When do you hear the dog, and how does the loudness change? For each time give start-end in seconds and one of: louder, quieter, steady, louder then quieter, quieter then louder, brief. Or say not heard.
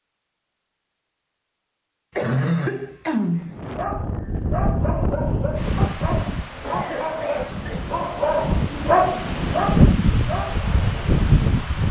3.6-10.6 louder.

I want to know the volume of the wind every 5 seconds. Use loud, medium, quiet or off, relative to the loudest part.
medium, loud, loud.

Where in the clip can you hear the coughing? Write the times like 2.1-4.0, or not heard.
2.1-3.6, 6.6-7.9.